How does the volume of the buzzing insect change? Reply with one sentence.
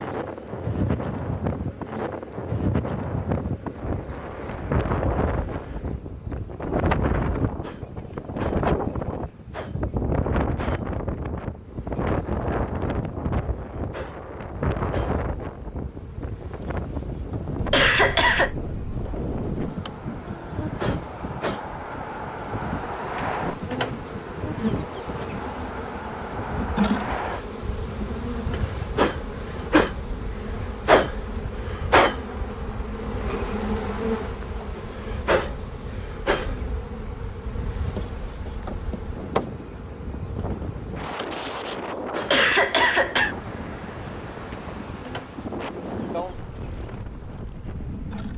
The volume of the buzzing insect goes up, then down.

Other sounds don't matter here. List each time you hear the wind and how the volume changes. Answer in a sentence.
You can hear the wind from 0.0 to 48.3 s, getting quieter then louder.